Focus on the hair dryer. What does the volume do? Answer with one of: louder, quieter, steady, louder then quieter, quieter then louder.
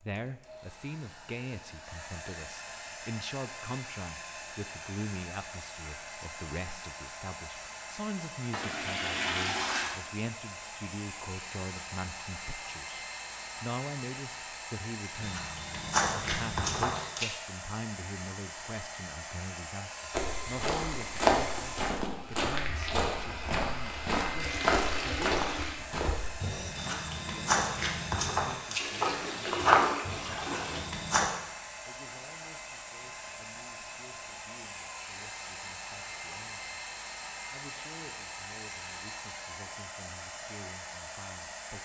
steady.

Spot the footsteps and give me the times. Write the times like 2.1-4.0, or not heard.
15.2-17.4, 20.1-31.2.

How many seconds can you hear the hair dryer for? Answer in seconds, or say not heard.
42 s.